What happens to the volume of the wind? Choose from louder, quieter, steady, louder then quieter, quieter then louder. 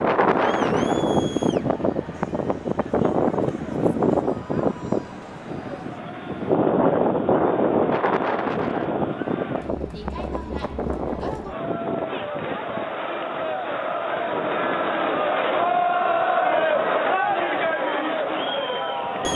quieter.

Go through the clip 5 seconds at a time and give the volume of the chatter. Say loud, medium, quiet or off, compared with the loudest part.
quiet, quiet, medium, loud.